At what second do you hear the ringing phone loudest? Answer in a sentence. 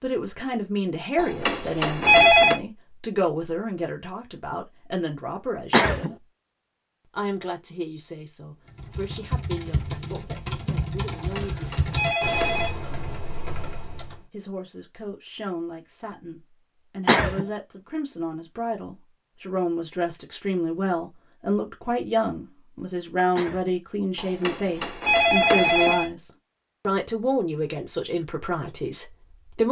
The volume of the ringing phone peaks at 2 seconds.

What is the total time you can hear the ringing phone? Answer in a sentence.
The ringing phone can be heard for 5 seconds in total.